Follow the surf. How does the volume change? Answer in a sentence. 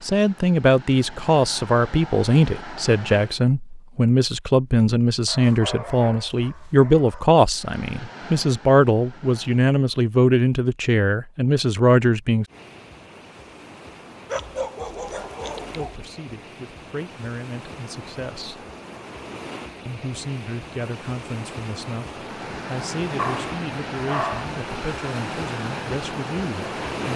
The volume of the surf goes up.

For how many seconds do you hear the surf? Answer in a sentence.
The surf can be heard for 15 seconds in total.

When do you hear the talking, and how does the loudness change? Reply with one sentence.
The talking can be heard from 0.0 to 12.4 s, at a steady volume; briefly from 15.8 to 18.6 s; and from 19.9 to 27.1 s, at a steady volume.